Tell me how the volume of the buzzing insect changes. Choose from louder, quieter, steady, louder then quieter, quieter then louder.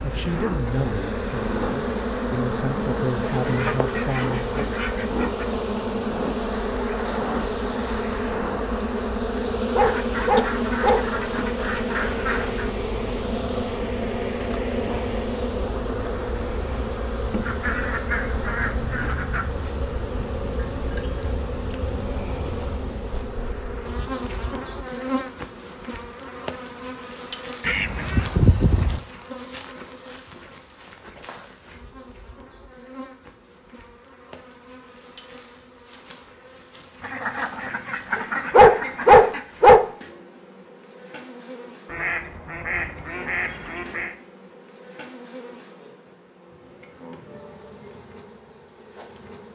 quieter.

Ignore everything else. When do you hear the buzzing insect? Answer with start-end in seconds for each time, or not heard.
0.0-49.4.